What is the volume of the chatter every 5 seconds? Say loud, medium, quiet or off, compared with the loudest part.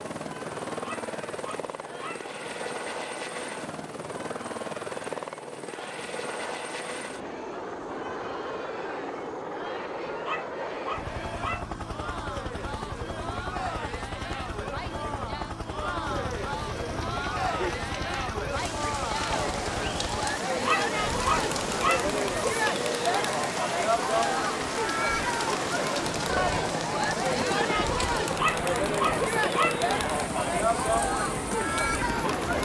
quiet, quiet, medium, medium, loud, loud, loud.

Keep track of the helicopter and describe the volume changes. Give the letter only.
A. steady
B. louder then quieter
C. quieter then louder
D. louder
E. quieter
A.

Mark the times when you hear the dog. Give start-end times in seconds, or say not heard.
0.8-2.2, 10.2-11.7, 20.6-22.1, 28.4-29.8.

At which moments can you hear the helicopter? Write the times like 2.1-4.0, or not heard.
0.0-32.6.